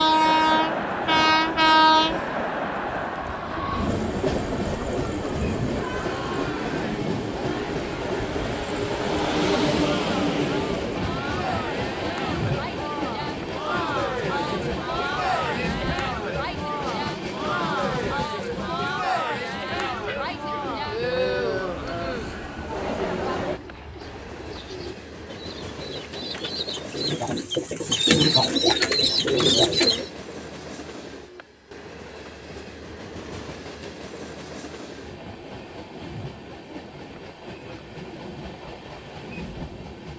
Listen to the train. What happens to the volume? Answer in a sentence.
The loudness of the train goes down.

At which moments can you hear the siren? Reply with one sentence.
You can't hear the siren here.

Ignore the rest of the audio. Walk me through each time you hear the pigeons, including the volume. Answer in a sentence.
The pigeons can be heard from 19.6 to 30.1 s, getting louder.